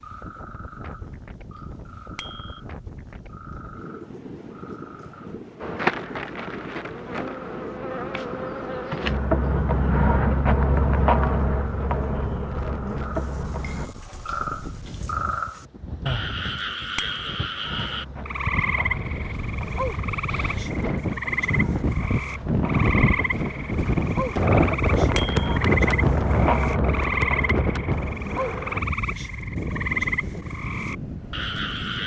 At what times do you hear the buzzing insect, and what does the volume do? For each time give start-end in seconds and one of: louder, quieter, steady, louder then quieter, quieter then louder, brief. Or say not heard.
5.5-13.9 louder then quieter
17.6-28.9 louder.